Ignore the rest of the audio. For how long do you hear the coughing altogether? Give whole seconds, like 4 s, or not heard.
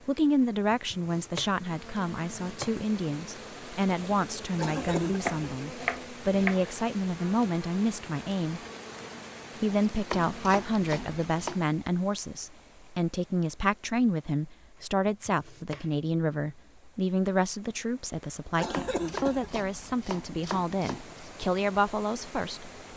2 s.